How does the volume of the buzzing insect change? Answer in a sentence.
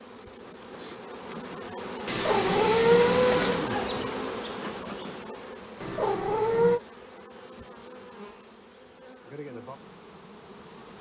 The loudness of the buzzing insect goes up, then down.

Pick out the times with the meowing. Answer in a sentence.
You can hear the meowing from 2.0 to 3.5 s and from 5.8 to 6.8 s.